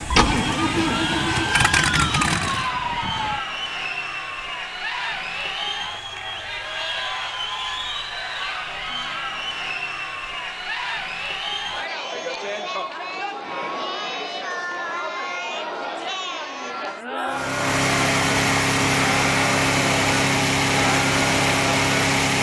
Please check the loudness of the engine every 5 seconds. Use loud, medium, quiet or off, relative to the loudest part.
loud, off, off, loud, loud.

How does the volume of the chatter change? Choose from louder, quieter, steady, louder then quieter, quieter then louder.
steady.